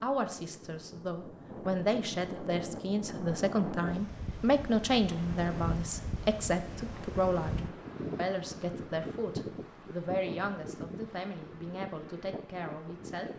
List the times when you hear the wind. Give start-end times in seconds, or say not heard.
0.0-13.3.